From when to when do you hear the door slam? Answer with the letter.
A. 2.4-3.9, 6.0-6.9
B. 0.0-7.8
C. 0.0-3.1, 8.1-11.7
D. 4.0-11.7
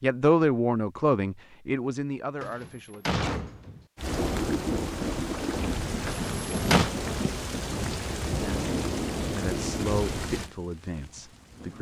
A.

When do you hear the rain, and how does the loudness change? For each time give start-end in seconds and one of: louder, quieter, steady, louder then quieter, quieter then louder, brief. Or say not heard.
4.0-11.7 quieter.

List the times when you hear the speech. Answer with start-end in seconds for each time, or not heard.
0.0-3.1, 8.1-11.7.